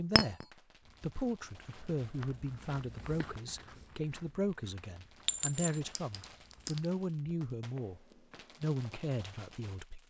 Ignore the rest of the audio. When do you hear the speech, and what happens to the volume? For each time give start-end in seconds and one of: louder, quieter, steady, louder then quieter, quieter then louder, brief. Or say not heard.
0.0-10.0 steady.